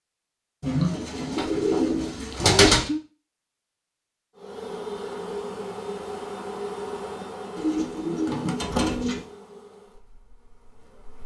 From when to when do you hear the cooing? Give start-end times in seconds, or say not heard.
0.6-2.9, 7.5-9.2.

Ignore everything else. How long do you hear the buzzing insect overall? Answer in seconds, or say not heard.
7 s.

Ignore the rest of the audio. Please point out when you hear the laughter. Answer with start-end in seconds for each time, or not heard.
2.3-3.0.